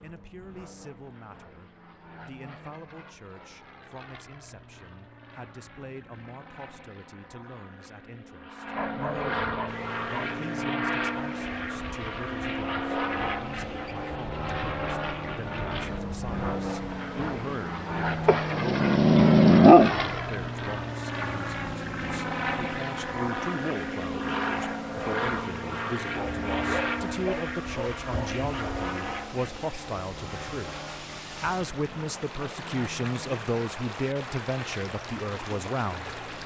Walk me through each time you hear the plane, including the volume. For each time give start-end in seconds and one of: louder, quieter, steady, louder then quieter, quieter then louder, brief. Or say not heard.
0.0-36.4 louder then quieter.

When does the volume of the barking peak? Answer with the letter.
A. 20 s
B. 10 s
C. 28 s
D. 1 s
A.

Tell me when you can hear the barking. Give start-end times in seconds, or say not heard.
8.8-10.3, 18.2-20.1, 26.1-28.9.